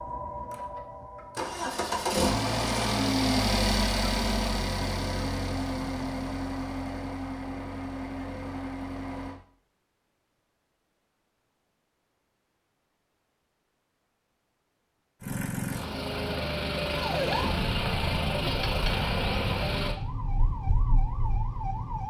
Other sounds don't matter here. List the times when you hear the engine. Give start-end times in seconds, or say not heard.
0.0-9.4, 15.2-19.9.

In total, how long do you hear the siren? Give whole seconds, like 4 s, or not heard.
5 s.